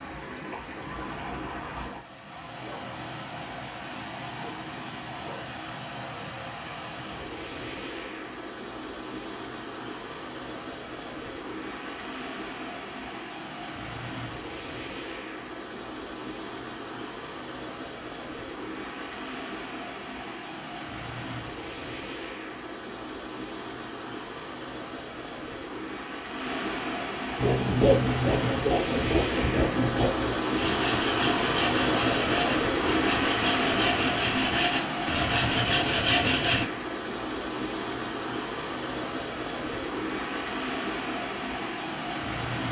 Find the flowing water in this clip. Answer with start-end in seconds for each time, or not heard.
0.0-42.6.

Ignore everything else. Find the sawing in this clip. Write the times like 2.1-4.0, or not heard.
27.4-36.6.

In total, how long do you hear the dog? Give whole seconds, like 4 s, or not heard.
not heard.